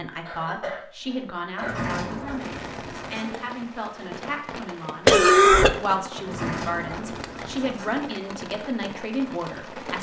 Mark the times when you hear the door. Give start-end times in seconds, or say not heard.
1.6-3.4, 6.2-8.1.